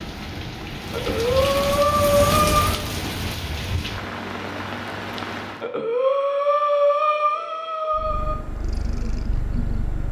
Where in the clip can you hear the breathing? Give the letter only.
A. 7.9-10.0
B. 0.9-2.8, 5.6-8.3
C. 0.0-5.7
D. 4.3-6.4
B.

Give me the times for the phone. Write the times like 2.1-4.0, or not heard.
not heard.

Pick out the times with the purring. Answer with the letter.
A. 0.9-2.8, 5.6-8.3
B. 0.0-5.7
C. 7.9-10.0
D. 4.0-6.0
C.